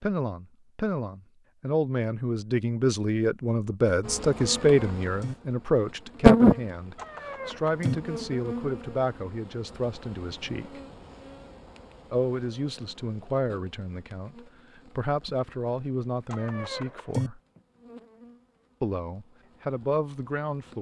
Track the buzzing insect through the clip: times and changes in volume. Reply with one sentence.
You can hear the buzzing insect from 4.0 to 20.7 s, getting quieter.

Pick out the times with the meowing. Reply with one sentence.
You can hear the meowing from 4.3 to 5.3 s, from 7.0 to 8.0 s and from 16.3 to 17.3 s.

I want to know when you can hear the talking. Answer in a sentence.
You can hear the talking from 0.0 to 10.8 s, from 12.1 to 17.4 s and from 18.8 to 20.7 s.